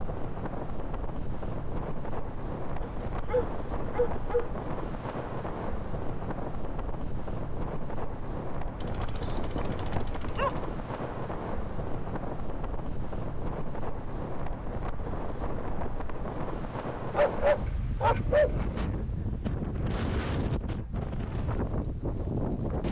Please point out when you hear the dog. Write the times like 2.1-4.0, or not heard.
2.8-4.5, 8.8-10.7, 17.1-18.8.